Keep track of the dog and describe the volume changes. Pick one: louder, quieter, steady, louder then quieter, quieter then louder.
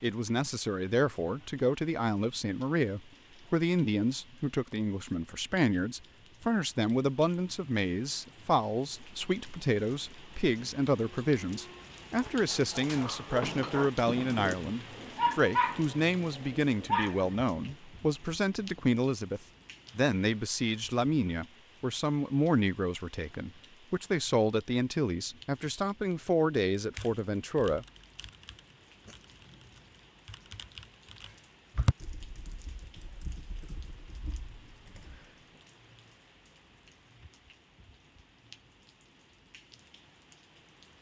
louder.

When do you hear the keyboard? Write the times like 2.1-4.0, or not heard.
26.9-35.4.